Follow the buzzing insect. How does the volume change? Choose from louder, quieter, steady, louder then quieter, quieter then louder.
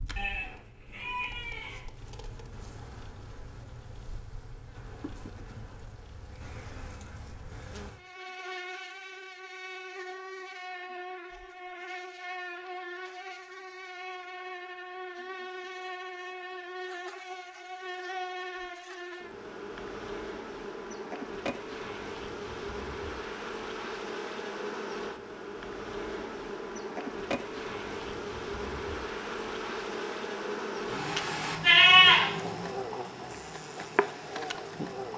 louder.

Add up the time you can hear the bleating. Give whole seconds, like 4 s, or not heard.
3 s.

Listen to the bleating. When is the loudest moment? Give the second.
32 s.